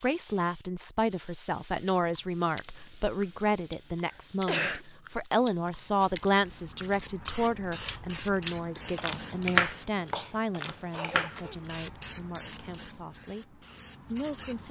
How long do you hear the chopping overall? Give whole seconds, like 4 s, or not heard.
2 s.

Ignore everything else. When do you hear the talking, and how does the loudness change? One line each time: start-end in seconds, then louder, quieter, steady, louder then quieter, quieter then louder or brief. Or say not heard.
0.0-14.6 quieter.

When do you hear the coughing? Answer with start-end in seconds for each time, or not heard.
4.0-4.8, 10.9-11.7.